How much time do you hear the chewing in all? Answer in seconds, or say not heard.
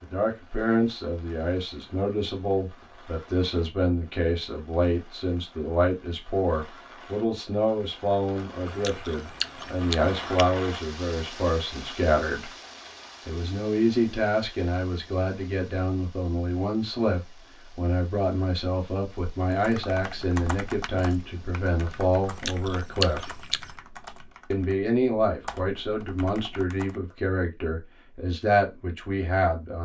3 s.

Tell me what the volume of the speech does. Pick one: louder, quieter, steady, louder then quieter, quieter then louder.
steady.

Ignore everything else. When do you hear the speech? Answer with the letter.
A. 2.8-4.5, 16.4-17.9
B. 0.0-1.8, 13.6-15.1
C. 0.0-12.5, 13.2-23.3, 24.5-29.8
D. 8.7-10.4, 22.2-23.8
C.